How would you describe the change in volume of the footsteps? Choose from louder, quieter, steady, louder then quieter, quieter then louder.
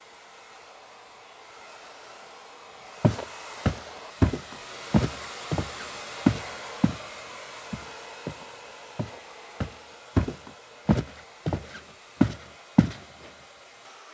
quieter then louder.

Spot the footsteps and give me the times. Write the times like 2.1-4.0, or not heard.
3.0-7.0, 7.7-13.0.